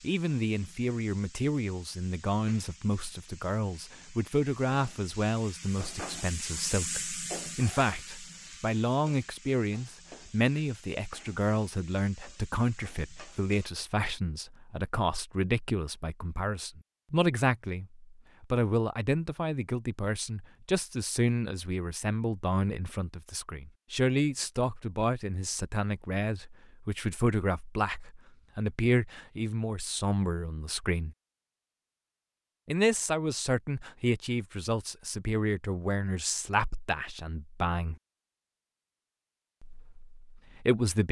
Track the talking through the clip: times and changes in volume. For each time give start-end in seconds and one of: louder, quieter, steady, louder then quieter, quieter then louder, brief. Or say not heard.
0.0-31.1 steady
32.6-38.0 quieter
39.6-41.0 brief.